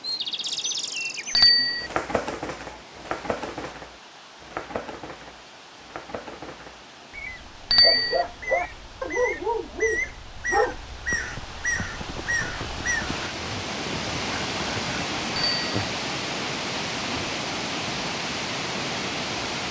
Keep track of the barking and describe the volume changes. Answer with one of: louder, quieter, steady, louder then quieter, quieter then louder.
quieter.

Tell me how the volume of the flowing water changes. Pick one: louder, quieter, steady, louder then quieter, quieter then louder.
louder.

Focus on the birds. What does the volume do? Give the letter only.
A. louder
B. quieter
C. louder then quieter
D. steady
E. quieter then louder
E.